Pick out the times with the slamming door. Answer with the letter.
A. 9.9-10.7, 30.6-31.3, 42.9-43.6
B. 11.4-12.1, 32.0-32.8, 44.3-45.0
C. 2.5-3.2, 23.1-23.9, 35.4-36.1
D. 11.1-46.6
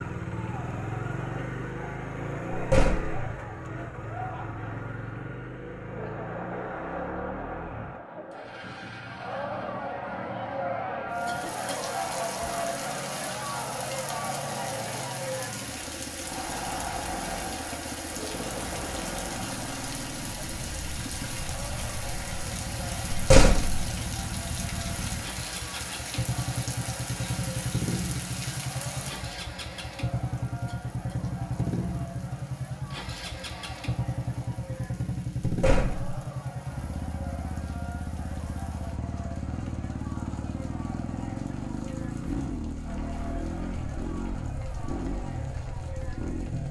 C.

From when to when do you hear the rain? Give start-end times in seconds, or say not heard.
11.1-46.6.